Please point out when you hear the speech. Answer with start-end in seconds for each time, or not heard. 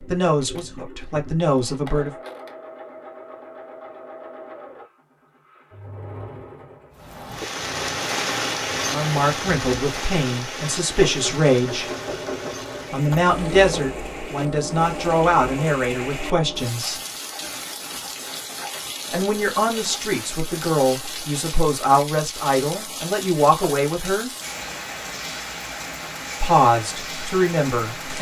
0.1-2.1, 8.8-11.9, 12.9-17.0, 19.1-24.3, 26.4-28.1.